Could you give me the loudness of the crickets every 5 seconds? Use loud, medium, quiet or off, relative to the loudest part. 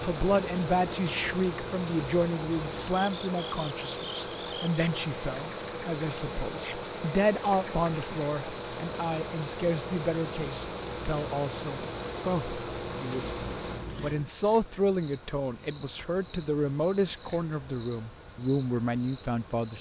medium, quiet, medium, loud.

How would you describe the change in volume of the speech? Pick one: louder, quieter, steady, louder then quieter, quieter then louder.
steady.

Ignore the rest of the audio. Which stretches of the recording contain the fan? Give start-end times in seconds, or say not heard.
0.0-19.7.